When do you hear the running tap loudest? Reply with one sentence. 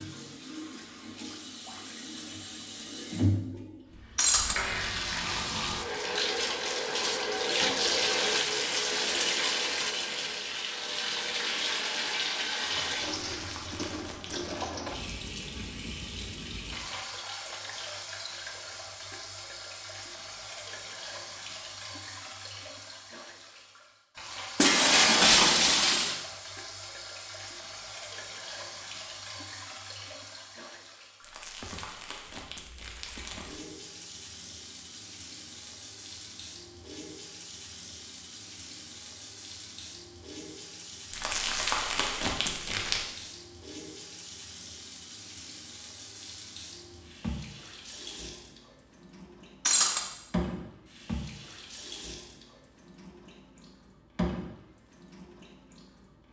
The loudest moment of the running tap is at 8 seconds.